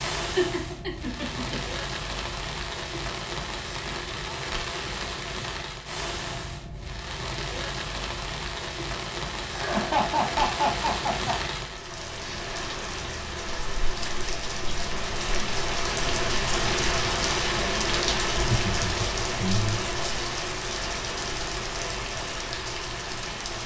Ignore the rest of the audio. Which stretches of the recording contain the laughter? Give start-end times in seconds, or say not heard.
0.2-1.6, 9.5-11.4, 18.3-19.9.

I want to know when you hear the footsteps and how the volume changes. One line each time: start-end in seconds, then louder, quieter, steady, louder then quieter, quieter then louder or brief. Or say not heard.
not heard.